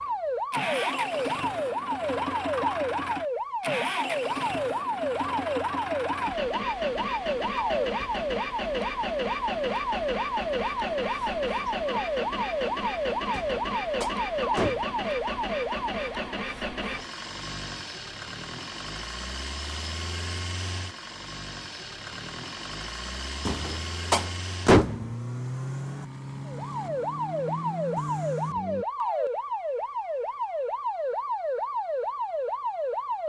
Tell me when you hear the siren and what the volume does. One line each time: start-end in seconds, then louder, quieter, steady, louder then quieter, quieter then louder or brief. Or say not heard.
0.0-16.4 steady
26.4-33.2 steady.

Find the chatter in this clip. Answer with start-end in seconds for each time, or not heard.
not heard.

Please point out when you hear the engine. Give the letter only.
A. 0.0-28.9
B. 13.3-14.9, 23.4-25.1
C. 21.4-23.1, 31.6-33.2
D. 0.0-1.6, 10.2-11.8
A.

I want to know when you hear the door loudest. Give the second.
25 s.